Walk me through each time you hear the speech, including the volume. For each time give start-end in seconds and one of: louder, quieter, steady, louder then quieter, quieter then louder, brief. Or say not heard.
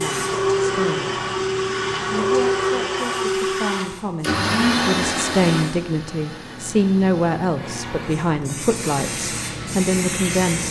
0.0-1.2 brief
2.1-10.6 louder.